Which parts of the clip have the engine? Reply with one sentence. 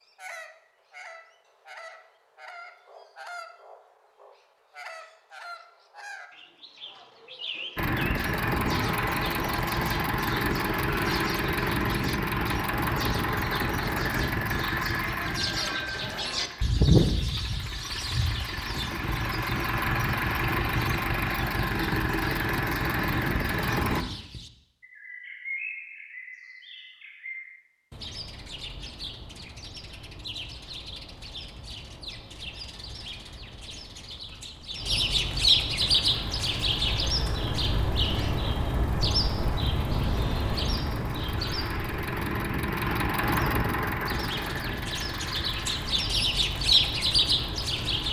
You can hear the engine from 7.8 to 24.1 s and from 35.8 to 48.0 s.